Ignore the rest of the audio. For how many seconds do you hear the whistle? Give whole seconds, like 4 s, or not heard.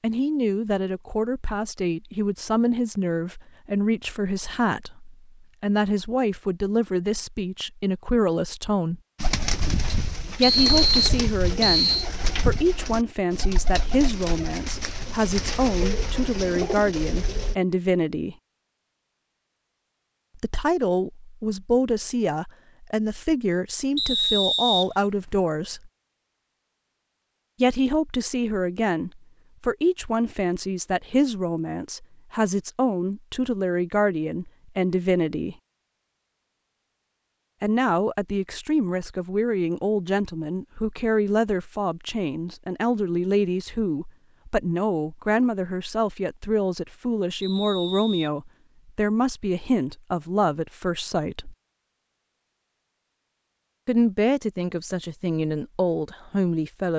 4 s.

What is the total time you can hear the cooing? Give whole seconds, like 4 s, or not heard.
8 s.